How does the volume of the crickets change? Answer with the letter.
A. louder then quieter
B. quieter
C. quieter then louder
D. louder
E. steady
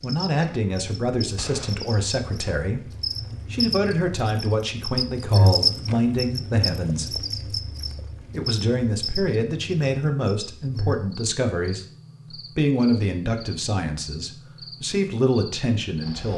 A.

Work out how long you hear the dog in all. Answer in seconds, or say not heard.
not heard.